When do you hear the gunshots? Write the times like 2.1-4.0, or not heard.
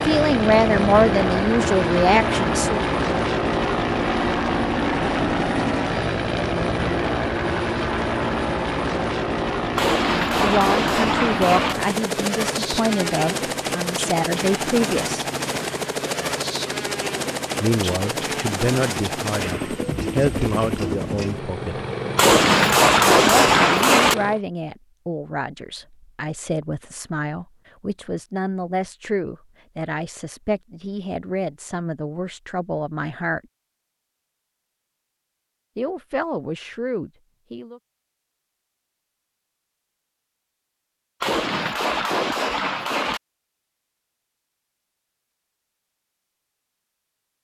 9.8-11.8, 22.1-24.1, 41.2-43.2.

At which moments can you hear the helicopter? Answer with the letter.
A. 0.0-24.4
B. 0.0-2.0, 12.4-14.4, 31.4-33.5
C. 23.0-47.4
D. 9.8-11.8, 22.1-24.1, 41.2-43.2
A.